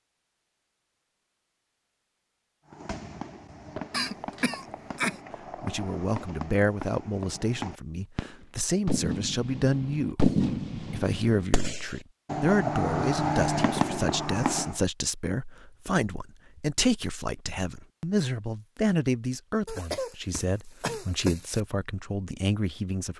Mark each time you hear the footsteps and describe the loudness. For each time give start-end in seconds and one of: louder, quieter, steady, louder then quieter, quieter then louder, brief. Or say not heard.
not heard.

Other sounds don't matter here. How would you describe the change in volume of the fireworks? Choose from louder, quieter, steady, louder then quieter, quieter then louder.
louder.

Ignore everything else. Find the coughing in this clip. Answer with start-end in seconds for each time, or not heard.
3.9-5.2, 19.6-21.6.